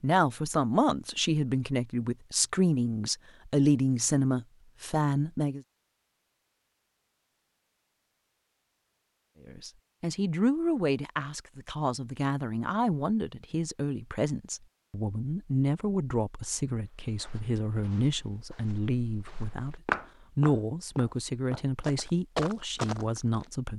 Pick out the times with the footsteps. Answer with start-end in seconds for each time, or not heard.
16.8-23.4.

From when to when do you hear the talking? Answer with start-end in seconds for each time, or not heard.
0.0-5.6, 9.4-23.7.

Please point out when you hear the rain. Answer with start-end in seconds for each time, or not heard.
not heard.